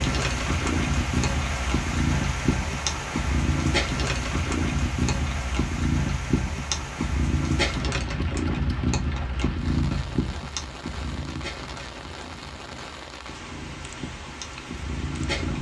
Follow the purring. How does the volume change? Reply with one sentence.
The loudness of the purring goes down.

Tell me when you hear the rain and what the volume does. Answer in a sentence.
The rain can be heard from 0.0 to 15.5 s, getting quieter.